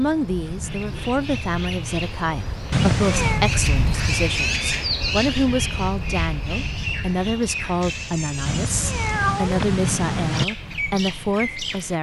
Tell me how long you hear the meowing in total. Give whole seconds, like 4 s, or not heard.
3 s.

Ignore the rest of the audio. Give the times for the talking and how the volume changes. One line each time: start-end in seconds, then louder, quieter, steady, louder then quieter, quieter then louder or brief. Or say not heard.
0.0-11.9 steady.